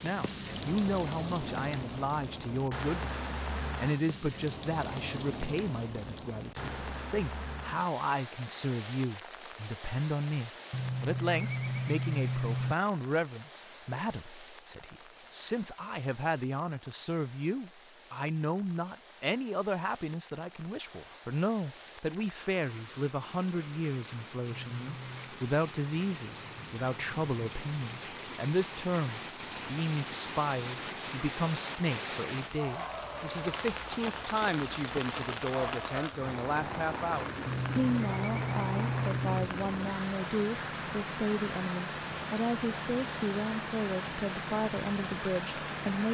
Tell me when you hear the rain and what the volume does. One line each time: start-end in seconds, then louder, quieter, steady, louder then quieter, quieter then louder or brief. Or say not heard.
0.0-46.0 quieter then louder.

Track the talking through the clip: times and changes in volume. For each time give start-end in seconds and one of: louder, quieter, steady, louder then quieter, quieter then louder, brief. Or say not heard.
0.0-46.0 steady.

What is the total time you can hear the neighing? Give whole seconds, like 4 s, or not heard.
5 s.